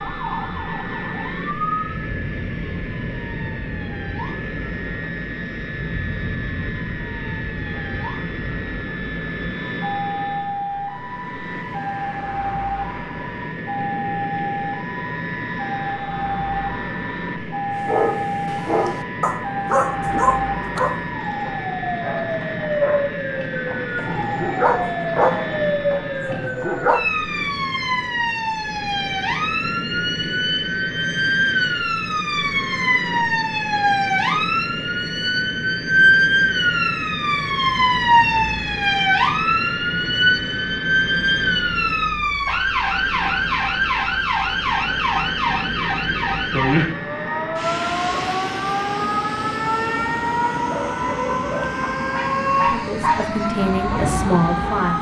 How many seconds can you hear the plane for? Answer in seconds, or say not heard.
55 s.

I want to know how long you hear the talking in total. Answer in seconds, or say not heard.
2 s.